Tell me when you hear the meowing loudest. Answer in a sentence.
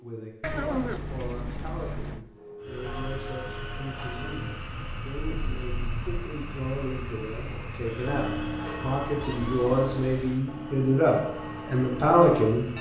The loudest moment of the meowing is at 1 second.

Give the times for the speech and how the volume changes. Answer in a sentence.
The speech can be heard from 0.0 to 12.7 s, getting louder.